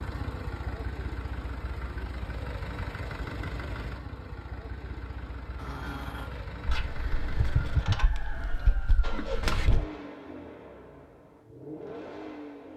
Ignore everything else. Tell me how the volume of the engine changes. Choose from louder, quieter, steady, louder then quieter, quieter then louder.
steady.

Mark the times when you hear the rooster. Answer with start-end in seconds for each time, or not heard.
6.7-9.8.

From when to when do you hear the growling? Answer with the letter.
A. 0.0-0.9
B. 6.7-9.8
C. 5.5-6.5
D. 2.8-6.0
C.